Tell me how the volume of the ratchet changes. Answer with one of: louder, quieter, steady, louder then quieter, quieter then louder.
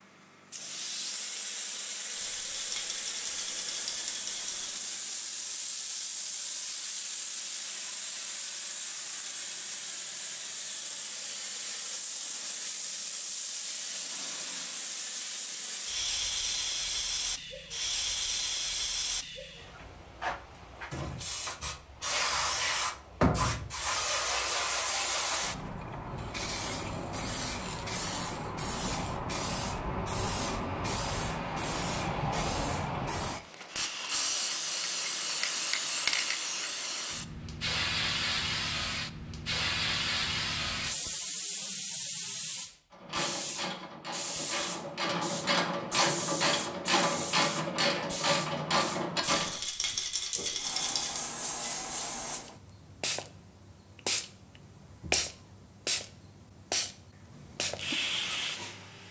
louder.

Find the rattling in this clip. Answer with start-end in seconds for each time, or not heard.
2.1-4.8, 49.3-51.2.